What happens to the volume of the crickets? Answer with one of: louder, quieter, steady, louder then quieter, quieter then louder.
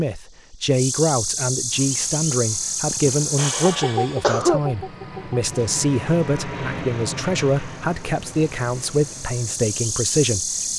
quieter then louder.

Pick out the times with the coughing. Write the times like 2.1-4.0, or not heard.
2.9-4.6.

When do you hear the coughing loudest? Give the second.
4 s.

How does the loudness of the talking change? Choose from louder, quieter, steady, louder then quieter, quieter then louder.
steady.